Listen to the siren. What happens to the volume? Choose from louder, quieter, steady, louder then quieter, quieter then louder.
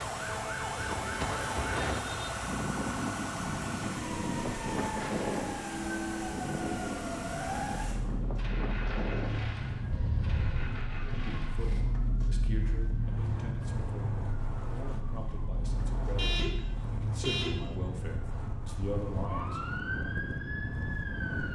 steady.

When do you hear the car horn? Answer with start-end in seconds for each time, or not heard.
0.2-2.3, 9.9-10.6, 16.1-17.8.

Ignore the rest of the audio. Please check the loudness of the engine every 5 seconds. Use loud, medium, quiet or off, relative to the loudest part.
loud, loud, medium, off, off.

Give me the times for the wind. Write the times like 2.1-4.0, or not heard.
0.0-21.5.